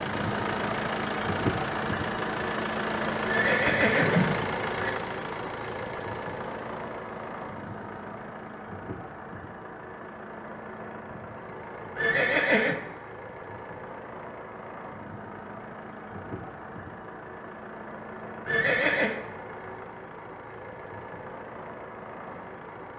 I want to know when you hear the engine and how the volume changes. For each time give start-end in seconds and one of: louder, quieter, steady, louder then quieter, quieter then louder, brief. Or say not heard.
0.0-22.9 quieter.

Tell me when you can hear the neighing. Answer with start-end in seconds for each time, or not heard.
3.2-4.9, 11.9-12.8, 18.4-19.2.